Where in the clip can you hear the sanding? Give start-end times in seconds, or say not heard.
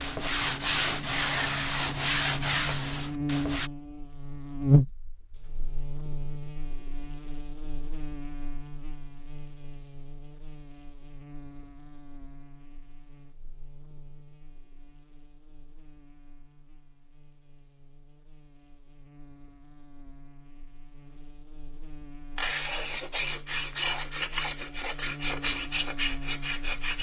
0.0-3.7, 22.4-26.9.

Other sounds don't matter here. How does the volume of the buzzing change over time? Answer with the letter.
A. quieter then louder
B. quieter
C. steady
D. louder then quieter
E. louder
A.